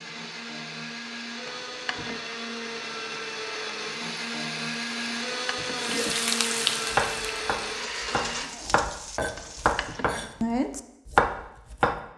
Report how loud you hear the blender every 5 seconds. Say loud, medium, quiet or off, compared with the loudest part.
loud, loud, off.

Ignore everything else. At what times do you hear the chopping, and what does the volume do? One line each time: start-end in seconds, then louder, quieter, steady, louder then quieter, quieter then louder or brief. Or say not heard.
6.9-11.9 louder.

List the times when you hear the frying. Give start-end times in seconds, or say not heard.
5.8-10.0.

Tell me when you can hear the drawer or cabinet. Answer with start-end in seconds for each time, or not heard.
1.4-2.2, 5.0-6.2, 9.3-10.1.